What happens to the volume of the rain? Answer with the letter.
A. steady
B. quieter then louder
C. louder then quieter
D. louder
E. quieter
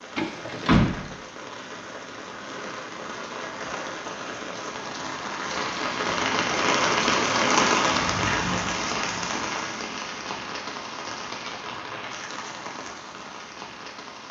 C.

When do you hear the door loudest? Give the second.
1 s.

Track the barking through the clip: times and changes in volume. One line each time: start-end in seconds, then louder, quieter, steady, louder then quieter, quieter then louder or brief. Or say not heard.
not heard.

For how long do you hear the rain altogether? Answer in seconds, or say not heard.
14 s.